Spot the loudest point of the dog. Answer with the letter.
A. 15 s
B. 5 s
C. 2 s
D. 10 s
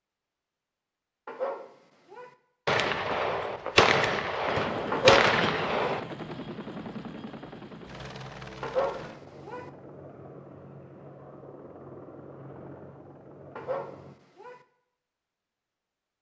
B.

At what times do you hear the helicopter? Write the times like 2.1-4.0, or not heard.
4.5-14.2.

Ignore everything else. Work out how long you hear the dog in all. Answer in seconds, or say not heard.
4 s.